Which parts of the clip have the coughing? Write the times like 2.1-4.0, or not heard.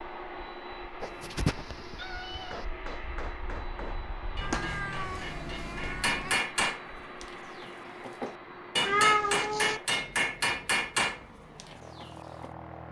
not heard.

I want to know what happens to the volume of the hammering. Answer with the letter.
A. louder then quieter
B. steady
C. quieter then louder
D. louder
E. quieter
D.